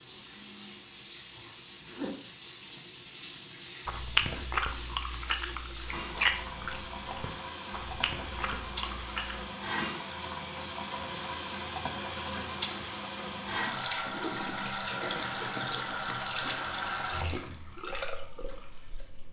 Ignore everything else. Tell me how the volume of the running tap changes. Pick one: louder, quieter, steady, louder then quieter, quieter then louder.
louder.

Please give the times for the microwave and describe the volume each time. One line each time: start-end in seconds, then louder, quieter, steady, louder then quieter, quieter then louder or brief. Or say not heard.
not heard.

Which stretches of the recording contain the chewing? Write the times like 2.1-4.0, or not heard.
3.9-9.4.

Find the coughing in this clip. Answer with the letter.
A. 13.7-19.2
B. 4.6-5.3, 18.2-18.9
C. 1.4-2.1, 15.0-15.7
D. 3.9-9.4
C.